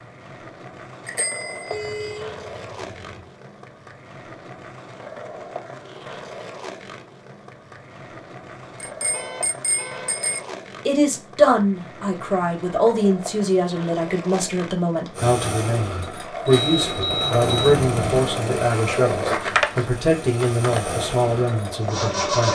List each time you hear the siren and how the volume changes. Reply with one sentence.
The siren can't be heard in this clip.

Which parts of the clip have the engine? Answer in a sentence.
You can hear the engine from 15.2 to 22.5 s.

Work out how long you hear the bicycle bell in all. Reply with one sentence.
You can hear the bicycle bell for 3 seconds altogether.